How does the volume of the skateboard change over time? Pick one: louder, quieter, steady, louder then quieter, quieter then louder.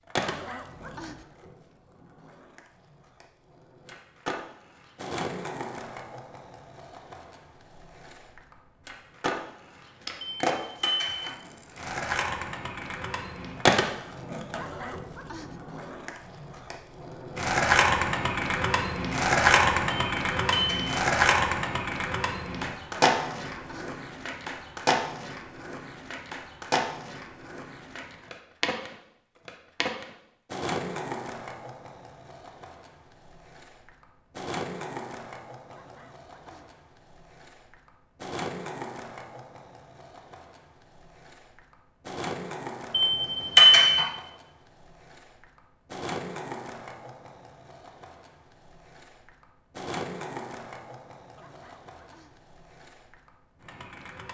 louder then quieter.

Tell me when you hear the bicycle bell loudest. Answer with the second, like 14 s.
44 s.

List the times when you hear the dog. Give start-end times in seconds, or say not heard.
0.2-1.2, 14.6-15.6, 23.1-23.9, 35.7-36.8, 51.4-52.4.